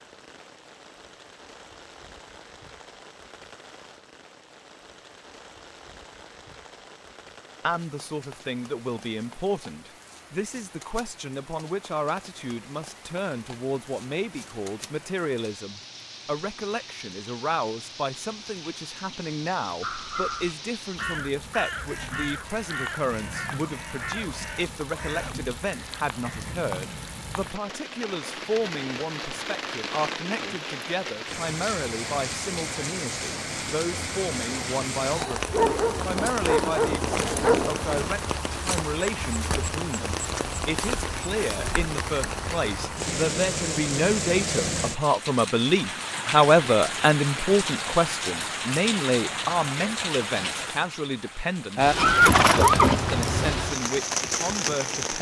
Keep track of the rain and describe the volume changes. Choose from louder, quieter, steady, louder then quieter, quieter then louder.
louder.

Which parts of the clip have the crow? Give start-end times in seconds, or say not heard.
19.8-26.6.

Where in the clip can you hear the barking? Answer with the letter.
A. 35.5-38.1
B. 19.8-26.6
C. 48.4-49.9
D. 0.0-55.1
A.